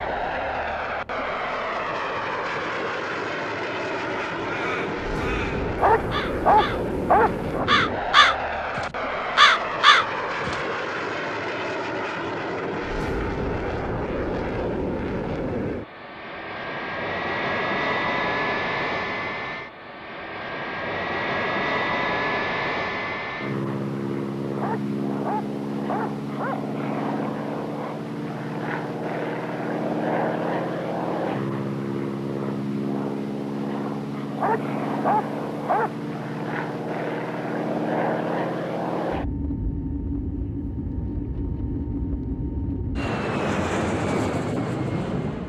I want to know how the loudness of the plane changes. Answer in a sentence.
The volume of the plane stays about the same.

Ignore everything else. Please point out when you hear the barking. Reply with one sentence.
The barking can be heard from 5.8 to 7.7 s, from 24.6 to 26.6 s and from 34.4 to 35.9 s.